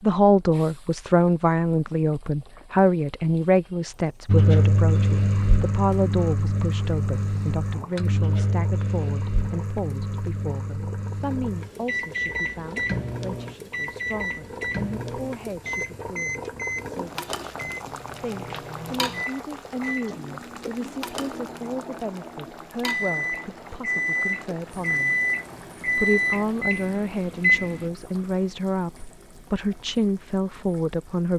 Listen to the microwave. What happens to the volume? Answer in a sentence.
The loudness of the microwave goes down, then up.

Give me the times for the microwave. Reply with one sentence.
You can hear the microwave from 4.2 to 27.9 s.